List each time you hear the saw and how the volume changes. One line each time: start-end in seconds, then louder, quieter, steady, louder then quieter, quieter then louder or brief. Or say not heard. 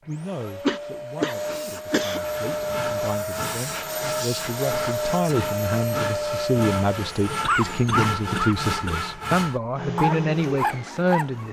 2.2-11.4 louder.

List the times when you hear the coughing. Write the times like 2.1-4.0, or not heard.
0.5-2.2, 7.4-9.1.